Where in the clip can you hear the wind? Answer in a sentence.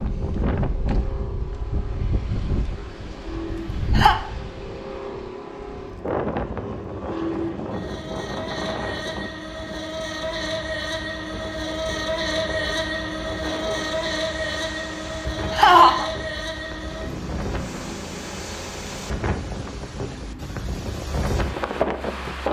You can hear the wind from 0.0 to 22.4 s.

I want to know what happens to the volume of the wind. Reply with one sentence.
The volume of the wind goes down, then up.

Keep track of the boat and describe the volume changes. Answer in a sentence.
The loudness of the boat goes up, then down.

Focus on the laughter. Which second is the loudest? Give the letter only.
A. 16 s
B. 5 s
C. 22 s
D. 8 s
A.